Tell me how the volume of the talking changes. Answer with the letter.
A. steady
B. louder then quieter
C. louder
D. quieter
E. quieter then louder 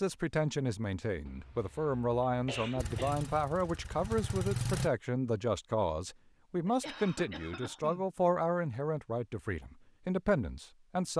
A.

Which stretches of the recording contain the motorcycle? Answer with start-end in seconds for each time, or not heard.
2.8-4.9.